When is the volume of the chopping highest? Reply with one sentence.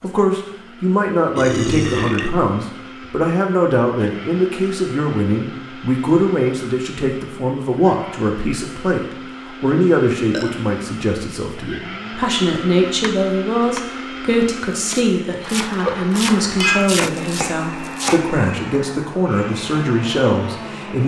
The loudest moment of the chopping is at 17 seconds.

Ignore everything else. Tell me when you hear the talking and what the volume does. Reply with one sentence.
The talking can be heard from 0.0 to 21.0 s, at a steady volume.